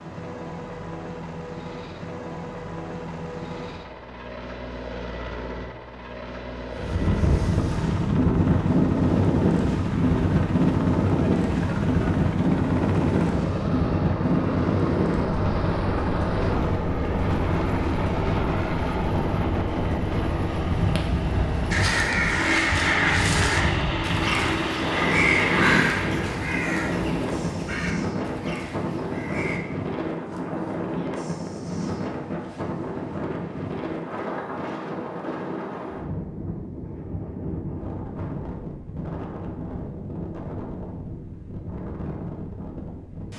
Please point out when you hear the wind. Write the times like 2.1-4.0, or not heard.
6.7-43.3.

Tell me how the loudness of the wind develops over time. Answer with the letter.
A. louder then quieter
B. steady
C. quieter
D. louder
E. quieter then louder
C.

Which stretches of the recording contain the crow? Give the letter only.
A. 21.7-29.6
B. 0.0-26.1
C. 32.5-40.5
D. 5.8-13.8
A.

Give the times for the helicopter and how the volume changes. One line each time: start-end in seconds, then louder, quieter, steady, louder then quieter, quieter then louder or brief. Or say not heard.
0.0-26.1 louder.